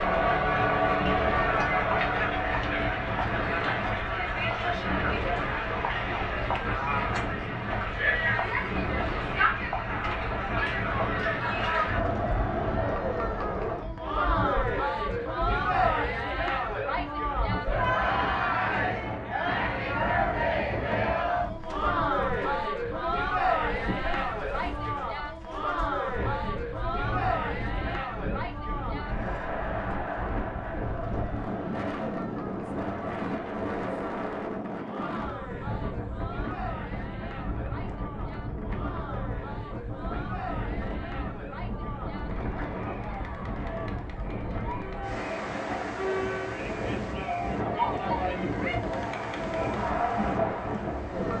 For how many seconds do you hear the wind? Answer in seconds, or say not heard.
51 s.